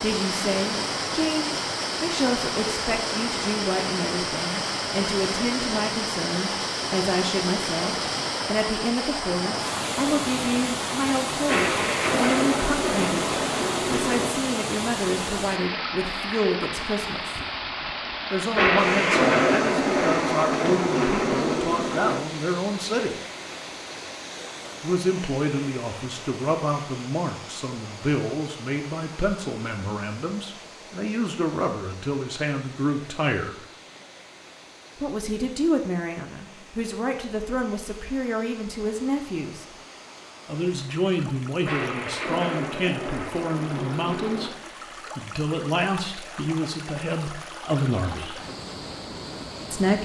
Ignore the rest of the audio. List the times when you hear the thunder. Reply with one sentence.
You can hear the thunder from 11.4 to 14.3 s, from 18.6 to 22.2 s and from 41.6 to 44.5 s.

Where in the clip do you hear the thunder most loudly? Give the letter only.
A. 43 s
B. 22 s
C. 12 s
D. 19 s
D.